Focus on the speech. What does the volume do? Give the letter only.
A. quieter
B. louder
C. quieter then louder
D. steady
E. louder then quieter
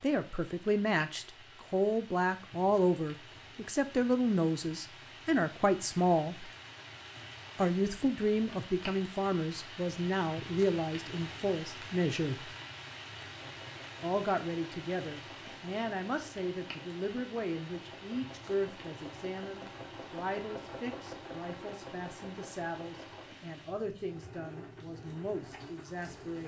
A.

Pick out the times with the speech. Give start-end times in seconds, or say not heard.
0.0-6.5, 7.5-12.5, 14.0-26.4.